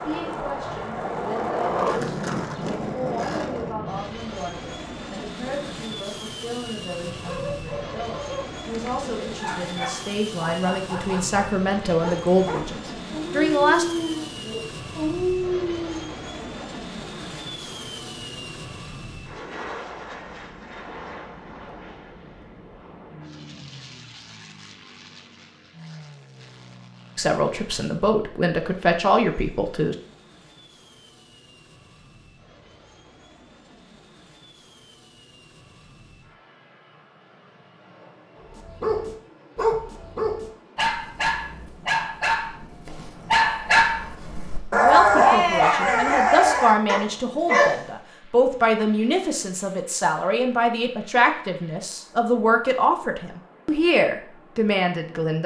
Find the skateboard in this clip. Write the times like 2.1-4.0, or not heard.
0.0-3.8.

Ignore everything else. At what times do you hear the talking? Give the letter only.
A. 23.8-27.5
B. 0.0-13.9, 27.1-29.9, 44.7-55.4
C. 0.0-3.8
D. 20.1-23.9
B.